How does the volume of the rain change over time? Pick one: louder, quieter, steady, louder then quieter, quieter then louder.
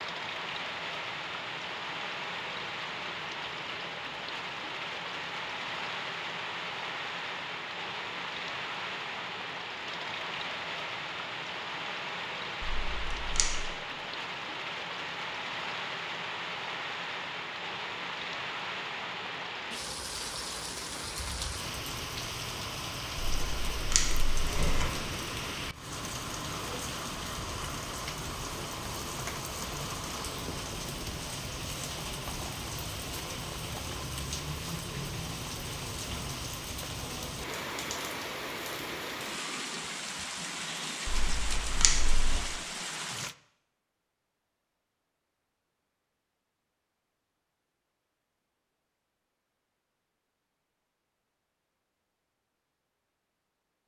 steady.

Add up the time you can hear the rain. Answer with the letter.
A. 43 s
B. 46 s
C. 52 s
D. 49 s
A.